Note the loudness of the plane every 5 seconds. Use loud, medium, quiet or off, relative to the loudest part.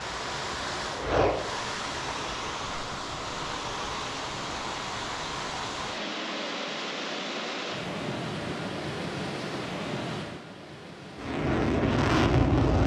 medium, off, loud.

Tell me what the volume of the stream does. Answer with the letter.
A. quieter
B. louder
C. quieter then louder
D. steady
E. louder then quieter
D.